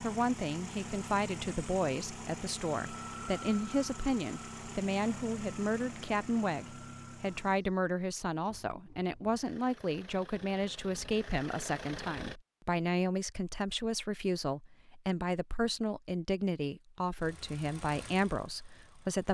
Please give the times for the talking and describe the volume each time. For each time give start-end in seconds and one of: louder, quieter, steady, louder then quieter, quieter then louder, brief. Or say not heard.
0.0-19.2 steady.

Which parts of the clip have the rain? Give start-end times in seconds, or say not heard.
not heard.